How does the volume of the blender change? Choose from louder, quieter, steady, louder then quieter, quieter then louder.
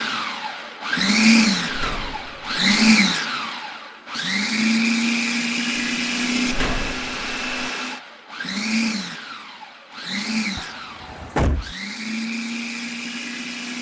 quieter.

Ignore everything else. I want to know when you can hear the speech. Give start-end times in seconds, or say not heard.
not heard.